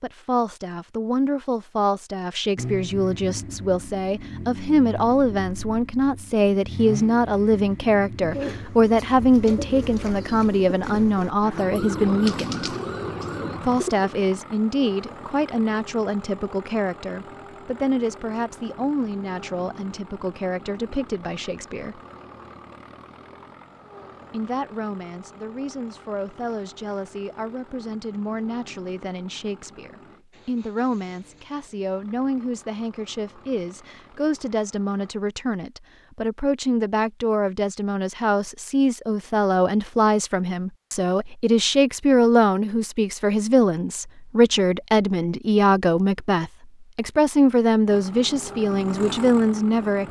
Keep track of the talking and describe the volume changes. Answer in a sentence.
The volume of the talking goes down, then up.